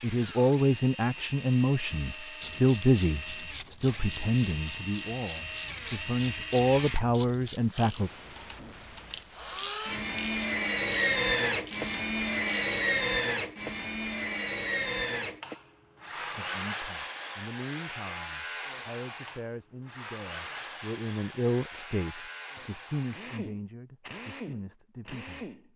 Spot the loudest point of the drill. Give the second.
11 s.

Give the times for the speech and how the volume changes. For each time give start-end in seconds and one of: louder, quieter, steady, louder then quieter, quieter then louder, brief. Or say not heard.
0.0-8.1 quieter then louder
16.1-25.5 louder then quieter.